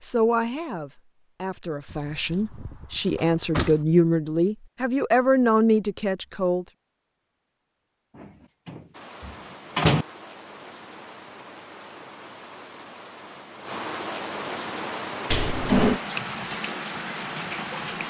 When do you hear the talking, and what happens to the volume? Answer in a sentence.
The talking can be heard from 0.0 to 6.7 s, getting louder.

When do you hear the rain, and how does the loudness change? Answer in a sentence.
The rain can be heard from 8.9 to 18.0 s, getting louder.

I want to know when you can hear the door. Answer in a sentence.
You can hear the door from 1.9 to 3.8 s, from 8.2 to 10.1 s and from 15.2 to 16.0 s.